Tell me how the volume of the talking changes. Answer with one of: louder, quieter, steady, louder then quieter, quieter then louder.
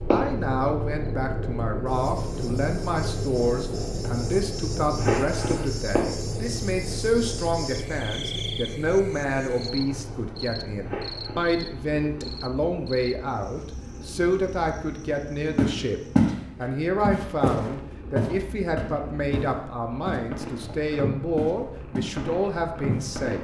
steady.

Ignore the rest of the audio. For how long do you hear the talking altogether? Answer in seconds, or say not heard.
23 s.